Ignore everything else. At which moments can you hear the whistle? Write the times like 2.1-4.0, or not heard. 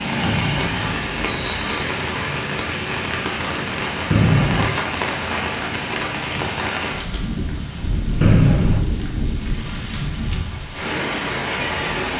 0.2-1.9, 4.1-4.8, 8.2-8.8.